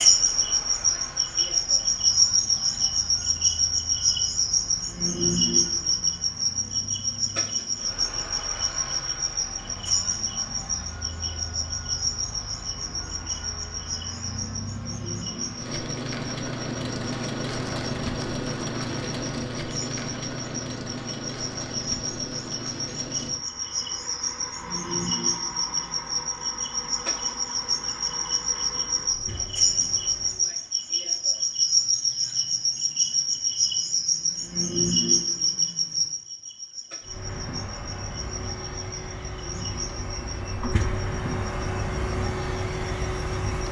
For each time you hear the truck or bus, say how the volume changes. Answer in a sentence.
The truck or bus can be heard from 0.0 to 30.5 s, getting louder then quieter; and from 37.0 to 43.6 s, getting louder.